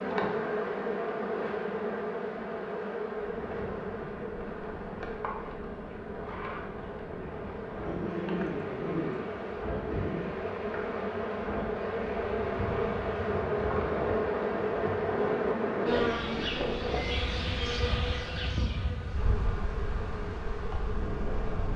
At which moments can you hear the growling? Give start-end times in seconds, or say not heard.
7.8-10.3.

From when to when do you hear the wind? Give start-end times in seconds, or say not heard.
3.2-21.7.